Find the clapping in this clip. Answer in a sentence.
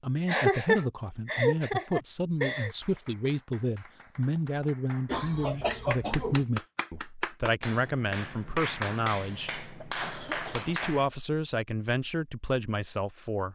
You can hear the clapping from 2.5 to 11.1 s.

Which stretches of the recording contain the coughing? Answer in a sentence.
The coughing can be heard from 0.2 to 2.7 s, from 5.0 to 6.5 s and from 9.1 to 11.1 s.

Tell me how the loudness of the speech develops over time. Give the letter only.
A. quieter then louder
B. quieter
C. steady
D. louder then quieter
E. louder
C.